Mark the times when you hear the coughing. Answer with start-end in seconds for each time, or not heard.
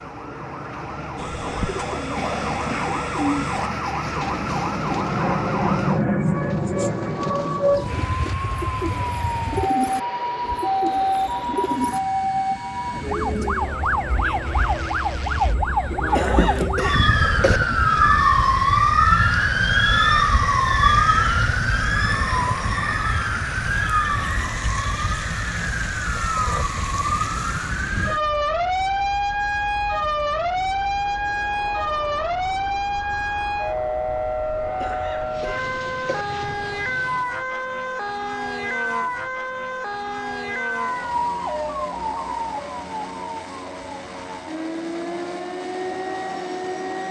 16.1-17.6, 34.8-36.2.